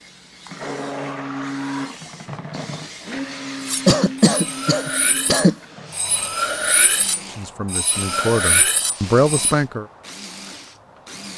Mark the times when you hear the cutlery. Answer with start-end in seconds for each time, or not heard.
3.6-9.6.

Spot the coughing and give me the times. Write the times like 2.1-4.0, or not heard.
3.9-5.5.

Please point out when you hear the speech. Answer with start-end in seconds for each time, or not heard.
7.2-9.8.